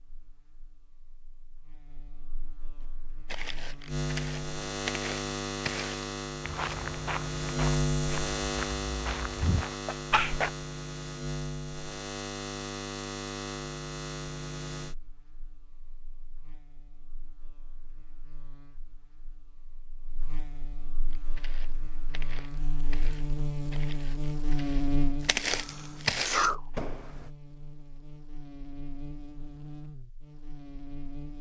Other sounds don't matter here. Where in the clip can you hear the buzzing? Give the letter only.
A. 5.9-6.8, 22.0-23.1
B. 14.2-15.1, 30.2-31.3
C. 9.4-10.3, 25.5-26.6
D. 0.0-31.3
D.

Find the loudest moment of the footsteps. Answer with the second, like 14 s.
26 s.